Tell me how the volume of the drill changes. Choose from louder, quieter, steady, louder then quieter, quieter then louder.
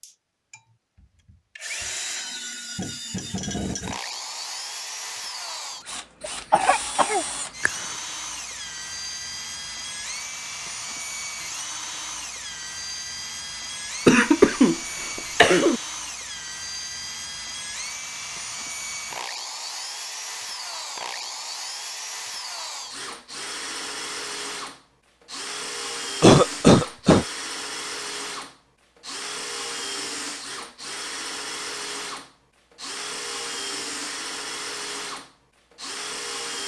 steady.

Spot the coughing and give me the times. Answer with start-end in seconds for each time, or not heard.
6.2-7.8, 14.1-15.8, 26.2-27.2.